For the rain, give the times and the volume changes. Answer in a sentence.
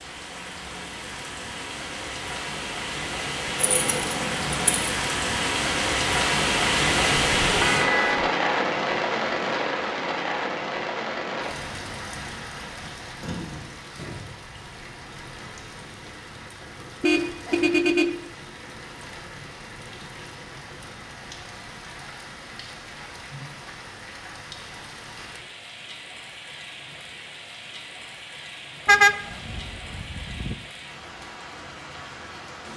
The rain can be heard from 0.0 to 32.7 s, getting quieter.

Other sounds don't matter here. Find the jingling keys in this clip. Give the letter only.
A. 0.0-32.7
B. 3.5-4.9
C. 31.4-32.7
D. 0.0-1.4
B.